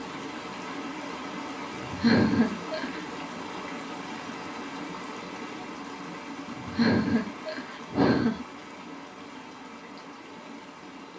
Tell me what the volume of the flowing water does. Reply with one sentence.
The loudness of the flowing water goes down.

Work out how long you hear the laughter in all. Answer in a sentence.
The laughter can be heard for 3 seconds in total.